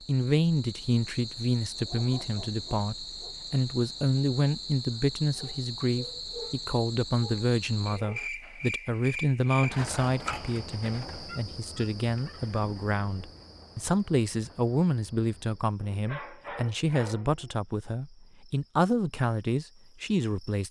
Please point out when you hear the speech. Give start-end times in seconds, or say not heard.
0.0-20.6.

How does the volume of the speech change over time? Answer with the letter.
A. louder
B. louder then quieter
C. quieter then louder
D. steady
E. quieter
D.